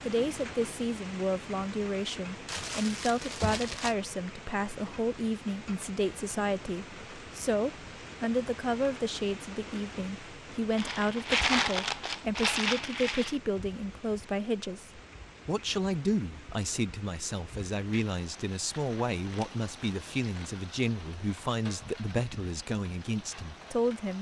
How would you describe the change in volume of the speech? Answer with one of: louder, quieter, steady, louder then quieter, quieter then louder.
steady.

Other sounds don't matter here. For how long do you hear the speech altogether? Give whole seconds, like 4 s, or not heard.
24 s.